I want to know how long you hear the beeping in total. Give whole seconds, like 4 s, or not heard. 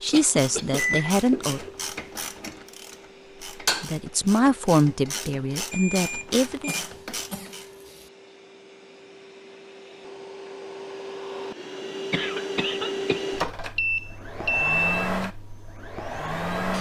3 s.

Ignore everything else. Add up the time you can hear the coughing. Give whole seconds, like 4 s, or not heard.
4 s.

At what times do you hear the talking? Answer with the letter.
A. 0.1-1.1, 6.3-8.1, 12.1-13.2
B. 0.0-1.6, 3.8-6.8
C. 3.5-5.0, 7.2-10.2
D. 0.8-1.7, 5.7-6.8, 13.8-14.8
B.